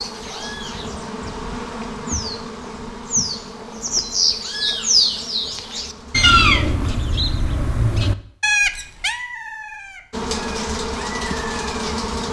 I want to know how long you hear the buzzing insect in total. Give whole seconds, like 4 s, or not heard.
9 s.